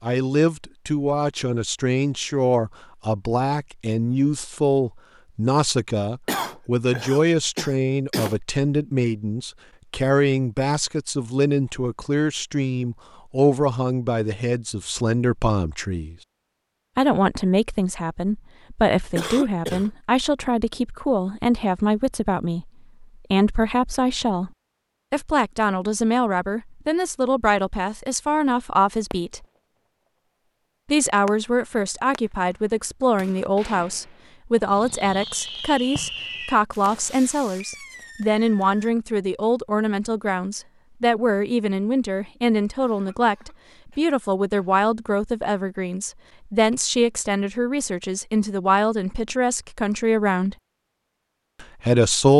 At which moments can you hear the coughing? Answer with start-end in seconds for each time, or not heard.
6.2-8.3, 19.1-19.9, 42.8-44.7.